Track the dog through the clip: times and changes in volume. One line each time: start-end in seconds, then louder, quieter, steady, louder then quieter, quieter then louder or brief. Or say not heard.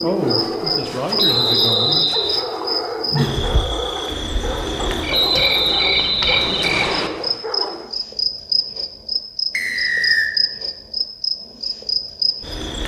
0.0-7.9 steady.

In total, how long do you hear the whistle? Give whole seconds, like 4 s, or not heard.
4 s.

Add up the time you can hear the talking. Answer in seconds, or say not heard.
2 s.